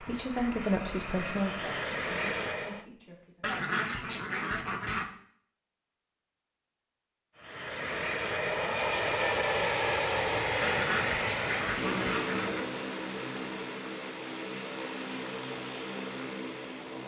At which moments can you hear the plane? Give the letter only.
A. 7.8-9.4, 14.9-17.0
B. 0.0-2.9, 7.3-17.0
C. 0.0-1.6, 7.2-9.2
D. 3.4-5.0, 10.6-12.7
B.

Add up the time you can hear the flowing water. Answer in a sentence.
The flowing water can't be heard in this clip.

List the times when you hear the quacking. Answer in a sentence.
You can hear the quacking from 3.4 to 5.0 s and from 10.6 to 12.7 s.